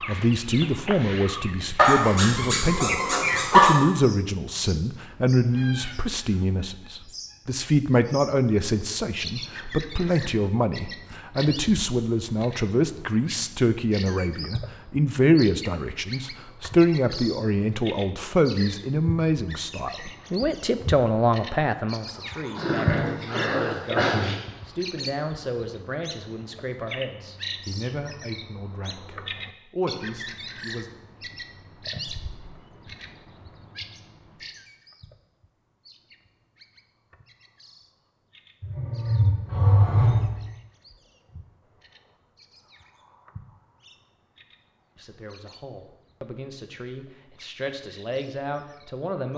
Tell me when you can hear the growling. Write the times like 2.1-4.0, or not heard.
1.8-3.8, 22.6-24.4, 38.6-40.5.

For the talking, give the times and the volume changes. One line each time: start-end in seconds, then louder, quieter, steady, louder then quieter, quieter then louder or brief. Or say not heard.
0.1-30.9 quieter
45.0-49.3 louder.